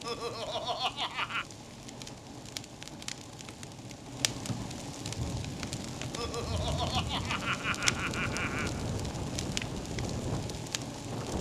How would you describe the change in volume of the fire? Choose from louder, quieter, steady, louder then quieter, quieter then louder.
louder.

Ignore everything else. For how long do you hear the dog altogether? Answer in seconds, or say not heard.
not heard.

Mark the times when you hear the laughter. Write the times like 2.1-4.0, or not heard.
0.0-1.4, 6.2-8.8.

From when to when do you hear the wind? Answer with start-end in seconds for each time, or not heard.
5.2-11.3.